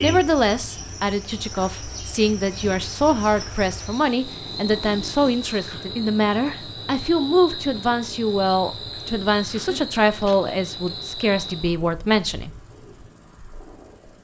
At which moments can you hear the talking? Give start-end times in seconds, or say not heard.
0.0-12.5.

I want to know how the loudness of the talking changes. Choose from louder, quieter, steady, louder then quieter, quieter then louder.
steady.